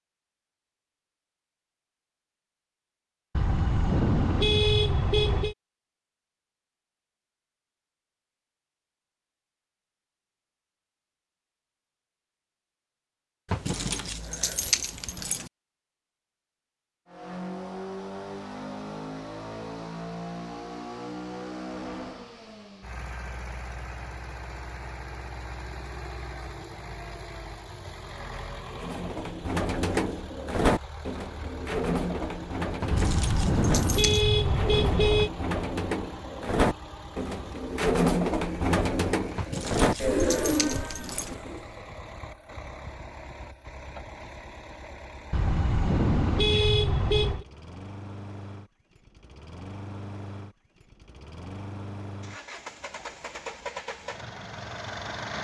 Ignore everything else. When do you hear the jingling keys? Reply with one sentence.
You can hear the jingling keys from 13.4 to 15.5 s, from 32.8 to 34.2 s and from 39.4 to 41.4 s.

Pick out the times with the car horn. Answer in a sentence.
The car horn can be heard from 3.4 to 5.5 s, from 32.9 to 35.3 s and from 45.3 to 47.5 s.